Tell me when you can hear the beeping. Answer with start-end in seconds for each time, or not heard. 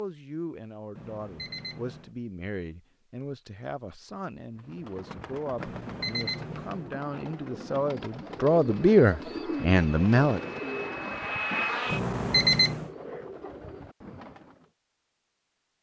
0.9-2.1, 5.5-6.9, 11.9-12.9.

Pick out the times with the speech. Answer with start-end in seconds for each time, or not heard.
0.0-10.4.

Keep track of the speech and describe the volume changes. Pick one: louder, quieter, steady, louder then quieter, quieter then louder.
louder.